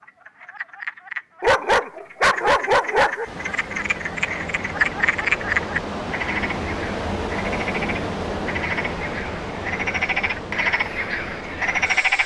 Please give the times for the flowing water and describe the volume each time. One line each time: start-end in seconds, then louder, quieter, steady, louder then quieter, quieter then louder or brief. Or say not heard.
3.2-12.2 louder then quieter.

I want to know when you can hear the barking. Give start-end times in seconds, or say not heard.
1.4-3.2.